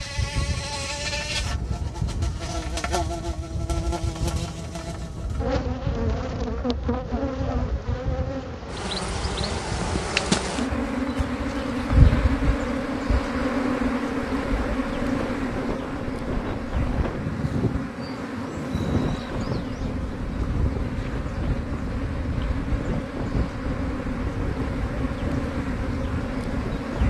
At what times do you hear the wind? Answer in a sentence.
The wind can be heard from 0.0 to 27.0 s.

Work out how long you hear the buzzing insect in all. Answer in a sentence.
You can hear the buzzing insect for 27 seconds altogether.